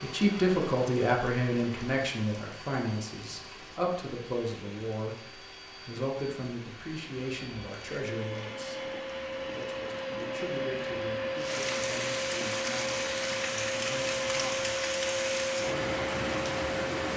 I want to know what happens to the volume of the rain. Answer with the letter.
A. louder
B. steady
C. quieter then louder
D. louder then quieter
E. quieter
A.